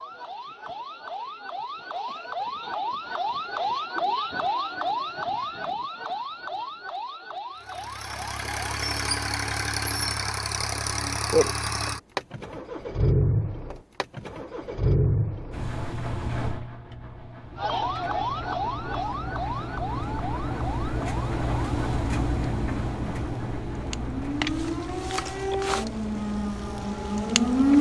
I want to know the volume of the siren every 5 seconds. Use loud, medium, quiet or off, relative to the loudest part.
medium, medium, off, medium, medium, loud.